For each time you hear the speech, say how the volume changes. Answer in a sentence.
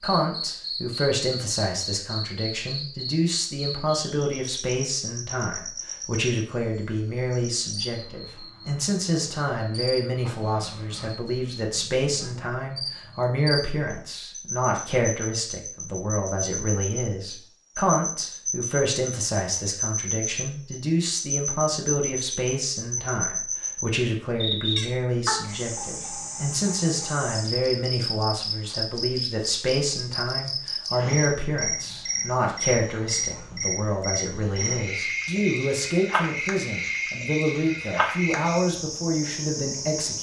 You can hear the speech from 0.0 to 40.1 s, at a steady volume.